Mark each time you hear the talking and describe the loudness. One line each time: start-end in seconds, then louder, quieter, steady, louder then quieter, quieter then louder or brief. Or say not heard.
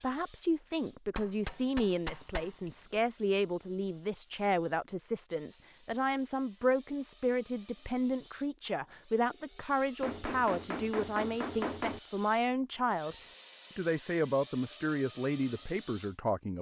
0.0-13.2 steady
13.8-16.5 brief.